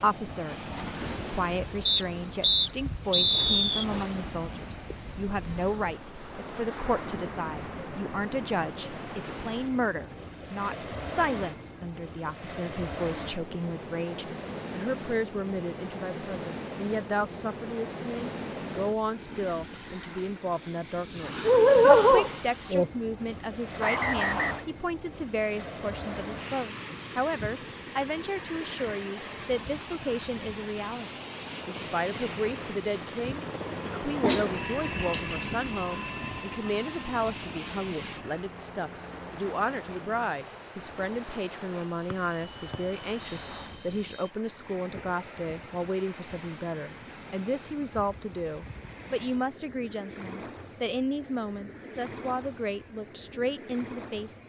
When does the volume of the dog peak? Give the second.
22 s.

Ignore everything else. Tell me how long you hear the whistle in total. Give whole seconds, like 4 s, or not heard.
5 s.